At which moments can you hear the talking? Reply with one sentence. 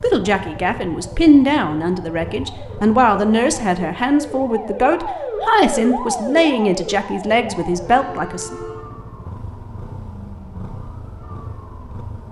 The talking can be heard from 0.0 to 8.6 s.